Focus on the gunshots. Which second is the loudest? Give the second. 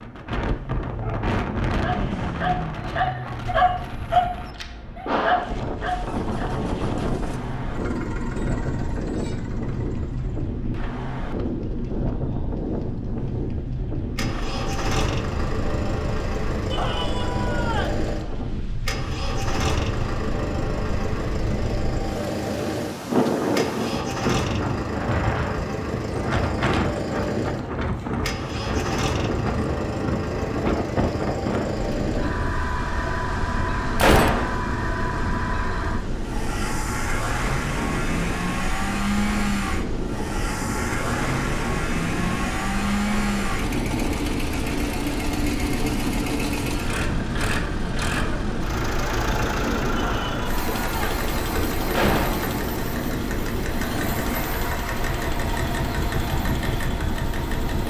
34 s.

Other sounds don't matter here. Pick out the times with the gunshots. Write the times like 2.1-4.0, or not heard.
3.5-5.5, 34.0-34.5, 51.9-52.5.